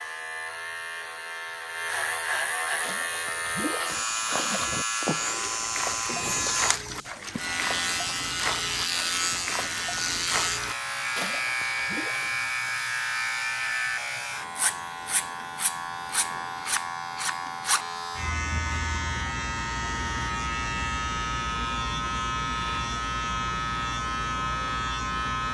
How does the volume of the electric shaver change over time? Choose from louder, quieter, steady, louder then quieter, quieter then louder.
steady.